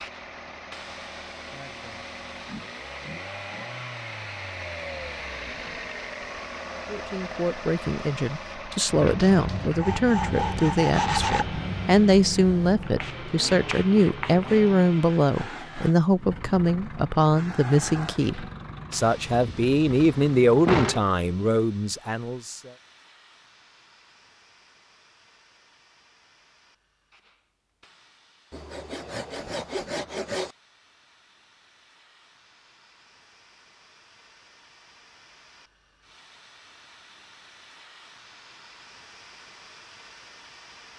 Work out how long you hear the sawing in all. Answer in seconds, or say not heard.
4 s.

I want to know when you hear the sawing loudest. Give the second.
11 s.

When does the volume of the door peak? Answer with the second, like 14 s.
21 s.